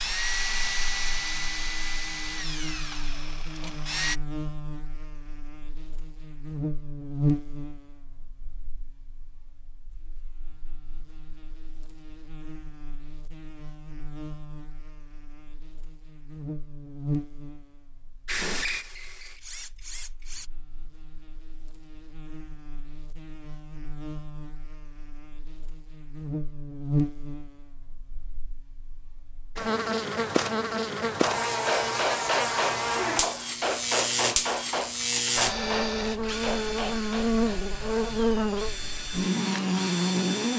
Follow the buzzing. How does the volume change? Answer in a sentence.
The loudness of the buzzing goes down, then up.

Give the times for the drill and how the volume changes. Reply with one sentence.
The drill can be heard from 0.0 to 4.2 s, getting quieter; briefly from 18.2 to 20.5 s; and from 35.4 to 40.5 s, getting quieter then louder.